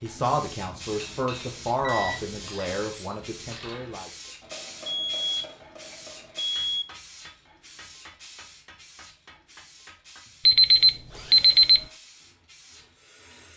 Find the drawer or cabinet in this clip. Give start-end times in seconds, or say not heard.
not heard.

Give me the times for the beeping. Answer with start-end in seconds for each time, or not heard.
1.8-2.4, 4.8-6.8, 10.4-11.8.